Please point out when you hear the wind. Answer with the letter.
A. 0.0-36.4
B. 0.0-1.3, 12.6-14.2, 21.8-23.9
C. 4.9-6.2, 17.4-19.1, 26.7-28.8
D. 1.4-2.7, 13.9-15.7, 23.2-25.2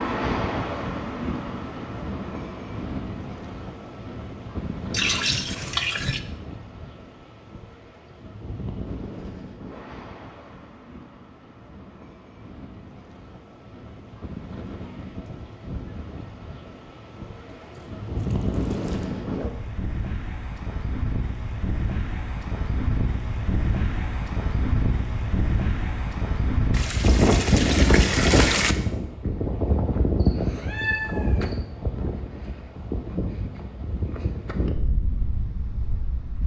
A.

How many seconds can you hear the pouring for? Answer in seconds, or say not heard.
5 s.